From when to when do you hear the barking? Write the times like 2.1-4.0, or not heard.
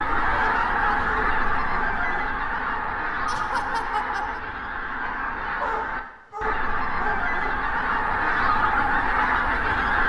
0.3-2.3, 5.6-7.6.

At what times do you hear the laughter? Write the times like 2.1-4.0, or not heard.
3.2-4.4.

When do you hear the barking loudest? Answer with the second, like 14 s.
6 s.